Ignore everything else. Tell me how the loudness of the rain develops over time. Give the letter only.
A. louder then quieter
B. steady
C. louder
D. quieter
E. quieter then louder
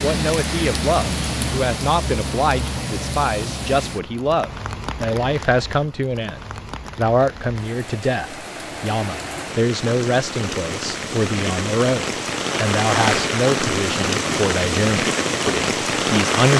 E.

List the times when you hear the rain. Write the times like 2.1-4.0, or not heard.
0.0-16.5.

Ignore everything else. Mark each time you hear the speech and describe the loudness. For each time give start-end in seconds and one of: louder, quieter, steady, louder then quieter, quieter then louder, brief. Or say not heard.
0.0-16.5 steady.